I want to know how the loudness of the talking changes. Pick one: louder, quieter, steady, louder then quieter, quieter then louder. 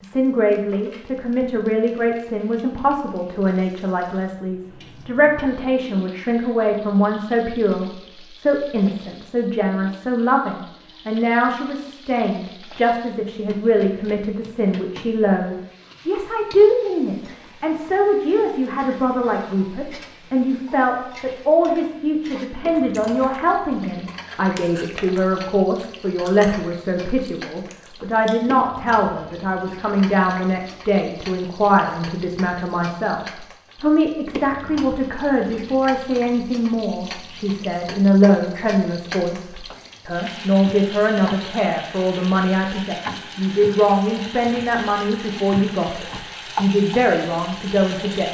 steady.